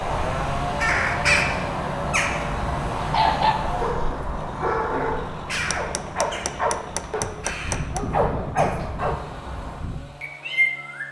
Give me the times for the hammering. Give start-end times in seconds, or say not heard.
5.7-8.1.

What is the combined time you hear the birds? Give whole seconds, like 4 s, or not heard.
11 s.